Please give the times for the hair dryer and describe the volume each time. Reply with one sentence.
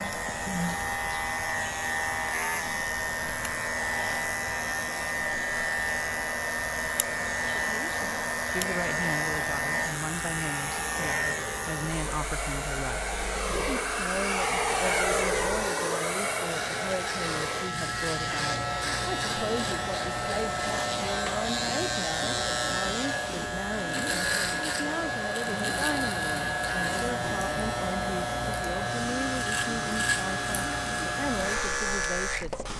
The hair dryer can be heard from 0.0 to 32.7 s, getting louder then quieter.